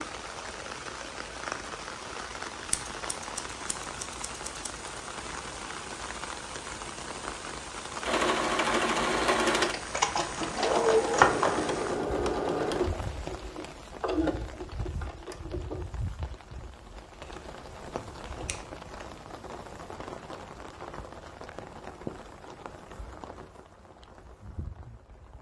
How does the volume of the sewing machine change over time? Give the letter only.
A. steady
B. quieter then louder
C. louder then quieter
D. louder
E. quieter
E.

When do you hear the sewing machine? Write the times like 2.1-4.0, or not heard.
8.0-15.8.